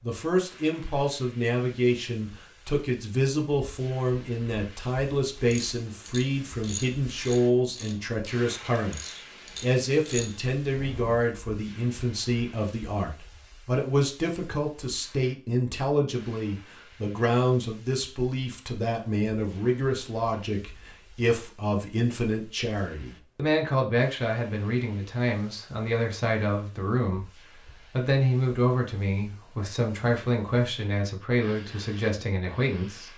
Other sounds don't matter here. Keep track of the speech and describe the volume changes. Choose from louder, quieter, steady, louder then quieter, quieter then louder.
steady.